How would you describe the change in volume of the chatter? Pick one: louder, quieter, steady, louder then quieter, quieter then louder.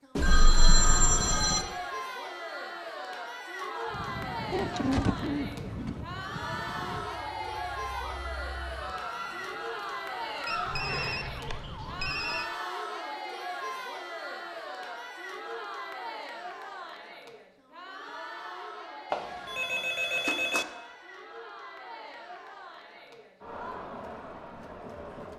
quieter.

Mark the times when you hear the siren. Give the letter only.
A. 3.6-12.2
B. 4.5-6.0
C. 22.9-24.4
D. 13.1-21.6
A.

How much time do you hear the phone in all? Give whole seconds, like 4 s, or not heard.
5 s.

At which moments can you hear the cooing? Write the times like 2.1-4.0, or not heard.
4.5-6.0.